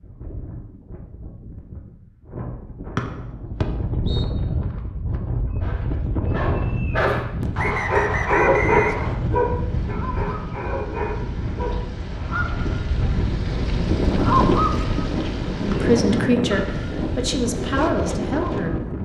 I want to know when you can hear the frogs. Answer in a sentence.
The frogs can't be heard in this clip.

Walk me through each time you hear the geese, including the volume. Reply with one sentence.
You can hear the geese from 9.2 to 18.7 s, getting louder then quieter.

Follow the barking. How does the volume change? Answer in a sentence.
The loudness of the barking goes up, then down.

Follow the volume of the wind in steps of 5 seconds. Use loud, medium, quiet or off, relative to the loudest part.
medium, loud, loud, loud.